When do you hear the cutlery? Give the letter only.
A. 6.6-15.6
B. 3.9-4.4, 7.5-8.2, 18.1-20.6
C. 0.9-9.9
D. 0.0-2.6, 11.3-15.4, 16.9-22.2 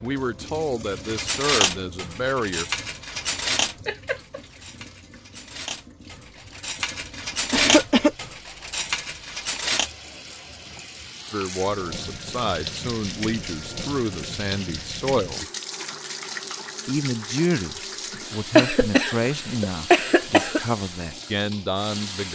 C.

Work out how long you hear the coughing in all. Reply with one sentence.
The coughing can be heard for 4 seconds in total.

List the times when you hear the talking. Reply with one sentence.
You can hear the talking from 0.0 to 2.6 s, from 11.3 to 15.4 s and from 16.9 to 22.2 s.